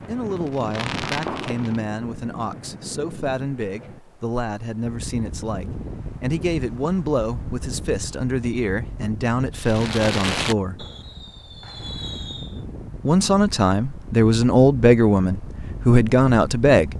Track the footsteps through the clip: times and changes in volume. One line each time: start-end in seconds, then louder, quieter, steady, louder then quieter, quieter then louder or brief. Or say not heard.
not heard.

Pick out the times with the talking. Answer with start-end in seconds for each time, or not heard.
0.1-10.8, 13.1-16.9.